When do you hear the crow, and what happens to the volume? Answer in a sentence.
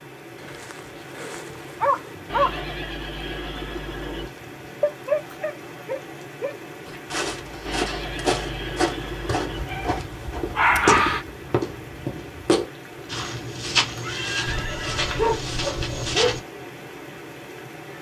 The crow can't be heard in this clip.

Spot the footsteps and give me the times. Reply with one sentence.
You can hear the footsteps from 6.8 to 16.4 s.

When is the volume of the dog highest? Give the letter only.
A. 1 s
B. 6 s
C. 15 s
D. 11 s
D.